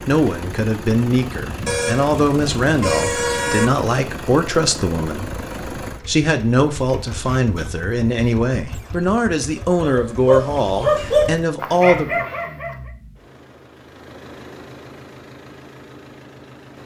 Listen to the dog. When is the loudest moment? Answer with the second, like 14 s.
11 s.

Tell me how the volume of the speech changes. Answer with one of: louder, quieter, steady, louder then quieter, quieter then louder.
steady.